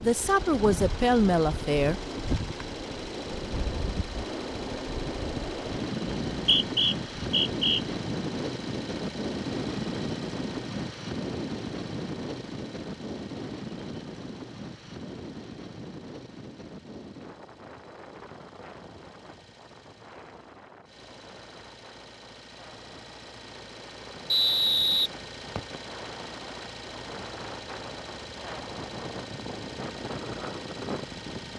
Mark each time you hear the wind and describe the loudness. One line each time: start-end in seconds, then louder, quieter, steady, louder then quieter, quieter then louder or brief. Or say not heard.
0.0-31.5 quieter then louder.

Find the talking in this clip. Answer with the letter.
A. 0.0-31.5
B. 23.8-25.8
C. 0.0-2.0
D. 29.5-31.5
C.